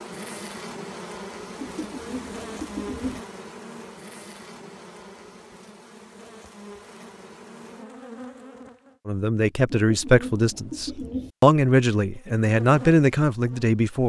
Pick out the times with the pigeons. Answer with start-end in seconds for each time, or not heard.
1.6-3.2, 9.8-11.3.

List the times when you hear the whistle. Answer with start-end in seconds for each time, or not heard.
not heard.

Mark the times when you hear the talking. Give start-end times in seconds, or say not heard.
9.1-14.0.